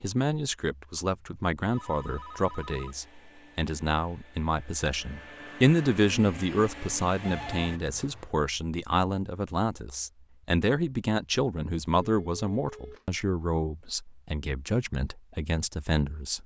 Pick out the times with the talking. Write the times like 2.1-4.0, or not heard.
0.0-16.4.